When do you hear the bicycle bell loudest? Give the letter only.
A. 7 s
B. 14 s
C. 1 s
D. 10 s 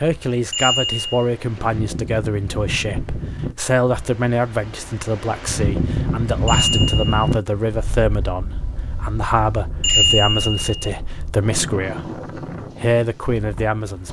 D.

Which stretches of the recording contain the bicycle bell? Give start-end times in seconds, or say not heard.
0.5-1.2, 6.5-7.3, 9.8-10.9.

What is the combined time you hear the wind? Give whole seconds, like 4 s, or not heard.
14 s.